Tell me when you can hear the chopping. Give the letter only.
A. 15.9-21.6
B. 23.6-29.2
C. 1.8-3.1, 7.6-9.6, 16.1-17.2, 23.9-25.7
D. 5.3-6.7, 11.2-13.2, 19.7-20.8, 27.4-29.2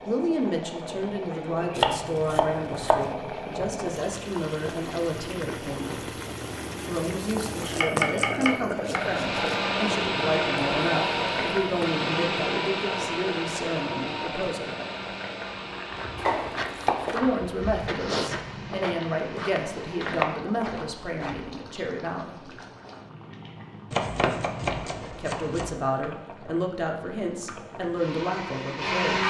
C.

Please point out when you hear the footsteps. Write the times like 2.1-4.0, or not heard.
15.9-21.6.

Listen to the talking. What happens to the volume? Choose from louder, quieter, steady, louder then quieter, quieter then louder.
steady.